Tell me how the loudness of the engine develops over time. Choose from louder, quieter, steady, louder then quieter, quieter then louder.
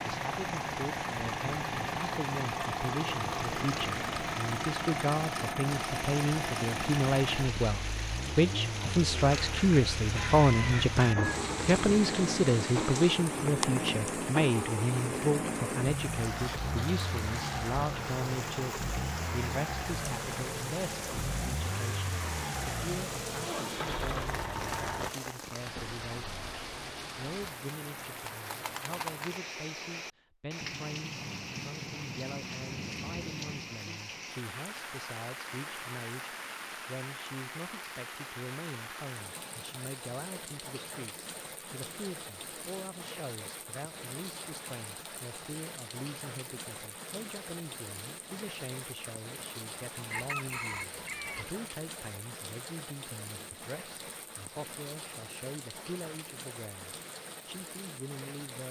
steady.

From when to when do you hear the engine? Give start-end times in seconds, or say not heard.
0.0-25.1.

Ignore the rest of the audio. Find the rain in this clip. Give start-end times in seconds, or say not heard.
0.0-58.6.